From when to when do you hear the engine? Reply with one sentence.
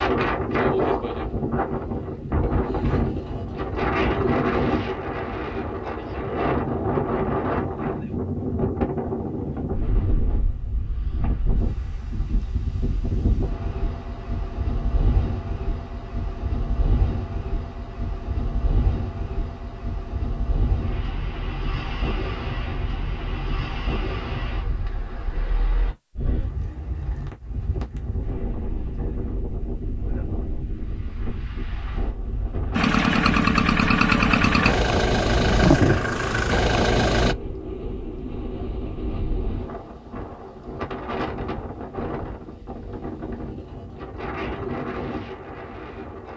You can hear the engine from 32.8 to 37.4 s.